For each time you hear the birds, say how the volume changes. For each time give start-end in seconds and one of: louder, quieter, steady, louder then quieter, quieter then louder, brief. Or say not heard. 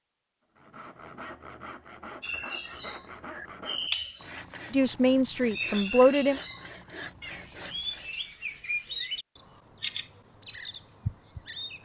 2.2-11.8 steady.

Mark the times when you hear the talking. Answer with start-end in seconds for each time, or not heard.
4.7-6.4.